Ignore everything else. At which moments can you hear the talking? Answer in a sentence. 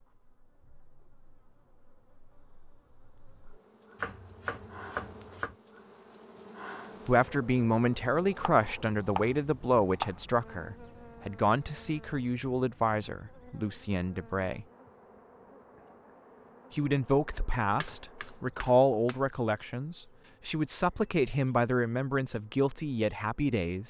You can hear the talking from 7.0 to 14.7 s and from 16.7 to 23.8 s.